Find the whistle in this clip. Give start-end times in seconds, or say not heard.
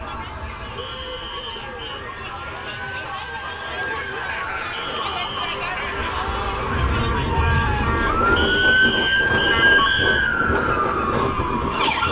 0.8-2.0, 4.7-5.5, 8.3-10.3.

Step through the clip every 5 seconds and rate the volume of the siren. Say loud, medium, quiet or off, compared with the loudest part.
quiet, loud, loud.